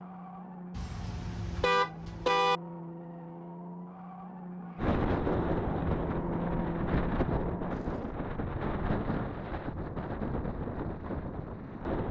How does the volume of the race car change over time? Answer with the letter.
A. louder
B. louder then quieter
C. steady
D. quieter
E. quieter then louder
A.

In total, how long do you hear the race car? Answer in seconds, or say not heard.
8 s.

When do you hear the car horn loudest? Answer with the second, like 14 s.
2 s.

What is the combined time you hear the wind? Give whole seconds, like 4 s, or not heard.
7 s.